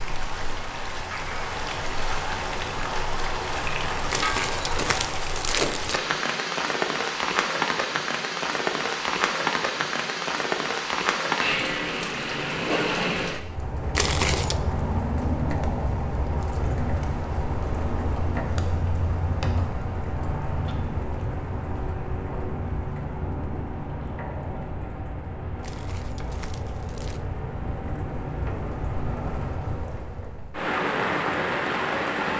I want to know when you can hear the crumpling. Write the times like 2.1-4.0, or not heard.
4.1-6.0, 13.9-14.6, 25.6-27.2.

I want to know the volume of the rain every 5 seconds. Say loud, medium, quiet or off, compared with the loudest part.
loud, loud, loud, loud, medium, medium, loud.